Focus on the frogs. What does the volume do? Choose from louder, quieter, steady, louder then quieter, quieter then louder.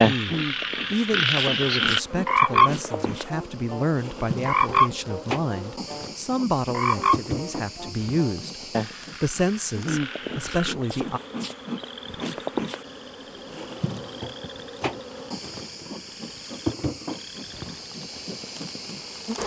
quieter.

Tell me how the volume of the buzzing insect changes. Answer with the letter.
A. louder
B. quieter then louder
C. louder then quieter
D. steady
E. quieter
D.